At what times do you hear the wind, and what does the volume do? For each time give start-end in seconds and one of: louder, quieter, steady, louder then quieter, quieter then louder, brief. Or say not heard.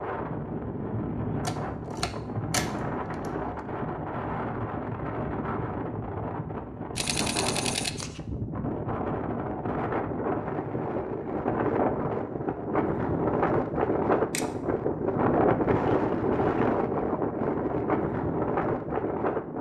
0.0-19.5 louder.